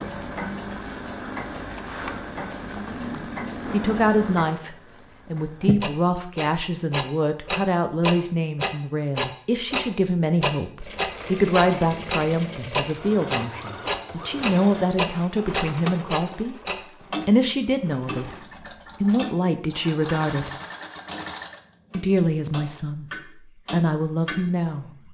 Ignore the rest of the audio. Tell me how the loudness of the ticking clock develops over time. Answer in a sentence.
The loudness of the ticking clock goes up, then down.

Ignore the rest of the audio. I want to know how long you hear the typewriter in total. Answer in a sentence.
You can't hear the typewriter here.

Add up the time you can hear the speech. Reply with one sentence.
You can hear the speech for 19 seconds altogether.